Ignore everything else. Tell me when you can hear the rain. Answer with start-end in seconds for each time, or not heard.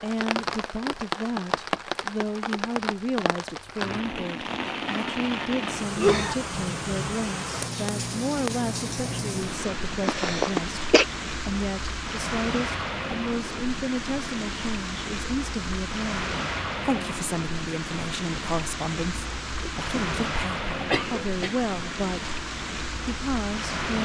0.0-24.0.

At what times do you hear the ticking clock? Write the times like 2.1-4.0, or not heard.
not heard.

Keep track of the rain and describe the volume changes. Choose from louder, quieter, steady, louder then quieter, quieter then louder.
steady.